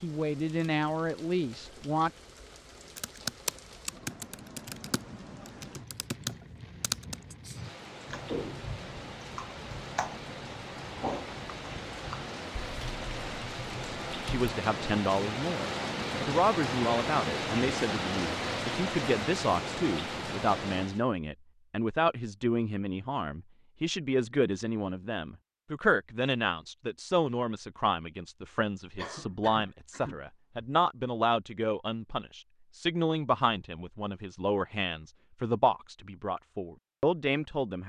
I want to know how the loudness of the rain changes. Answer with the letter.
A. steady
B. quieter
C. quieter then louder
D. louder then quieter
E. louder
E.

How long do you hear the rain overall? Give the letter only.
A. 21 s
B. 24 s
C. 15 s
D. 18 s
A.